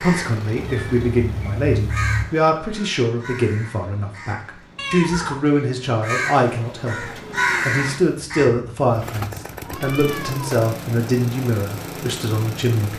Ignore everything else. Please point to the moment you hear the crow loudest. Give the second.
8 s.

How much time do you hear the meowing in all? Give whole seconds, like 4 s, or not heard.
3 s.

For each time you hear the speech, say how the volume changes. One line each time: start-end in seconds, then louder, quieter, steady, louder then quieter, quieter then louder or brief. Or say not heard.
0.0-12.9 steady.